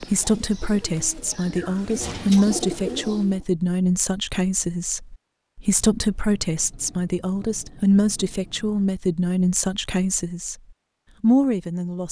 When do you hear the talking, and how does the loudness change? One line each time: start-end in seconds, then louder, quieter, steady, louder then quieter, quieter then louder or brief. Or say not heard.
0.0-10.6 steady
11.2-12.0 brief.